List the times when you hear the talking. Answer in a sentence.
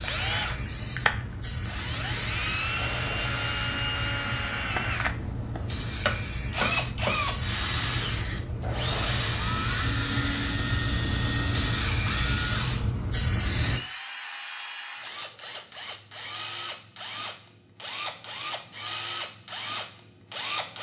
You can't hear the talking here.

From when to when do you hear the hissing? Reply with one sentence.
The hissing can be heard from 0.0 to 13.8 s.